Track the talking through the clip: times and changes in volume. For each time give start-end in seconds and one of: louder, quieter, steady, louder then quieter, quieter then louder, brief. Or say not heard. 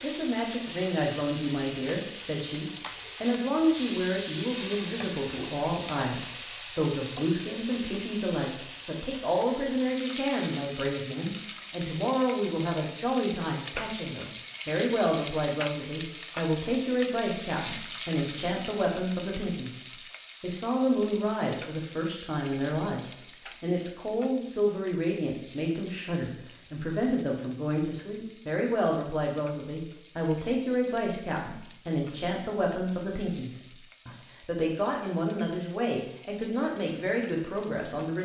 0.0-38.2 steady.